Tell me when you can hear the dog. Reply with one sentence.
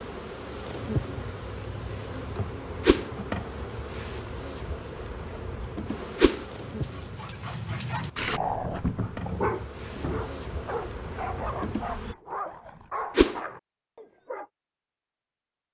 You can hear the dog from 6.5 to 14.4 s.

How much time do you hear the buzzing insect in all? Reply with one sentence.
You can hear the buzzing insect for 12 seconds altogether.